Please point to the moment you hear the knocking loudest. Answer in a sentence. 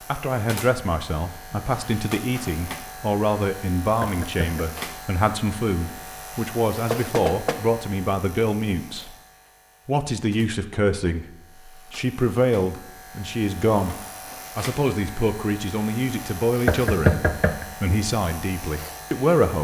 The loudest moment of the knocking is at 17 seconds.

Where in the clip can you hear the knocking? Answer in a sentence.
You can hear the knocking from 4.0 to 4.7 s, from 6.9 to 7.6 s and from 16.6 to 17.6 s.